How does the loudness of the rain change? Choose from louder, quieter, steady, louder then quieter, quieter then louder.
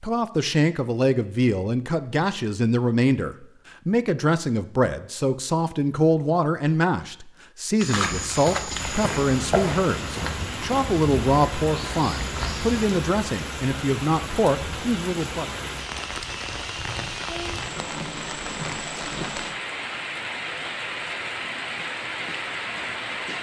steady.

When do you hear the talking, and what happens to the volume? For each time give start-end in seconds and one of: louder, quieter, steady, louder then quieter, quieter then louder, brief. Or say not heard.
0.0-15.5 steady.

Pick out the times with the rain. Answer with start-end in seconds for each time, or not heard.
8.8-23.3.